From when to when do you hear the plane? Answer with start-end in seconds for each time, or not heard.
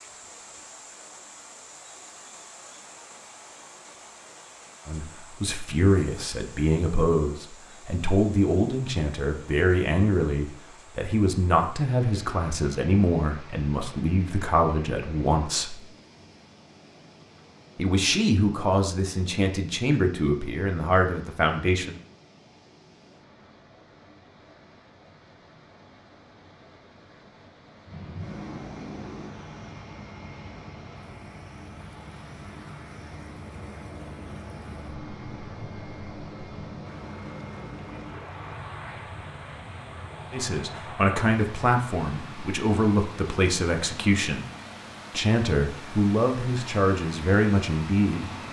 27.9-48.4.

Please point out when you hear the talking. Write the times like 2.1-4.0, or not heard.
4.8-15.8, 17.8-21.9, 40.3-44.5, 45.1-48.3.